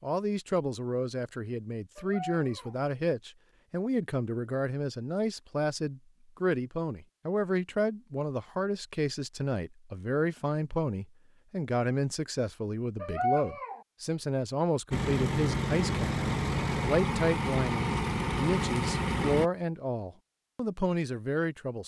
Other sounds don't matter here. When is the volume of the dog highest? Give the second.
13 s.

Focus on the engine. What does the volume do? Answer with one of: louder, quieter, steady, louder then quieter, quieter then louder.
steady.